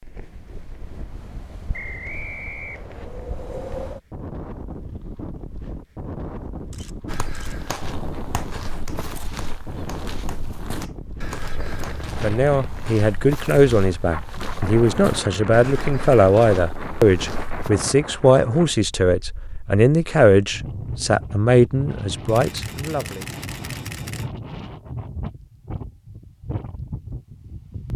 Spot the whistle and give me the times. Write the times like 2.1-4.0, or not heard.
1.7-3.1.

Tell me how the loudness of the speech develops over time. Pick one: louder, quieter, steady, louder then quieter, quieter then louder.
steady.